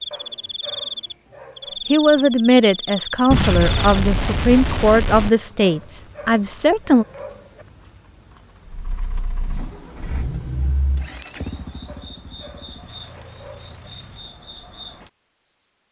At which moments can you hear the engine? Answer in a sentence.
You can hear the engine from 8.7 to 14.3 s.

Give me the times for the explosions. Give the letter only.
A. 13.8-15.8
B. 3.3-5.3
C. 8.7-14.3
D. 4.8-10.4
B.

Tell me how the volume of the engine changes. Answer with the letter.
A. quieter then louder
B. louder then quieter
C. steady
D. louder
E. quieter
B.